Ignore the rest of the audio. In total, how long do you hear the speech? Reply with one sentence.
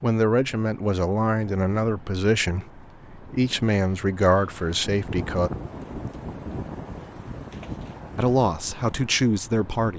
The speech can be heard for 7 seconds in total.